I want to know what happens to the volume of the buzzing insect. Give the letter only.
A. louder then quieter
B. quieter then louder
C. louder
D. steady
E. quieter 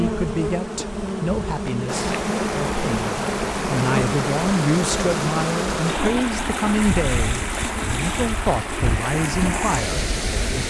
E.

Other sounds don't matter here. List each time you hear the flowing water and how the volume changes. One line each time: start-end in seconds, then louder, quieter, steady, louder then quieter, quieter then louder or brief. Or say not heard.
1.9-10.6 steady.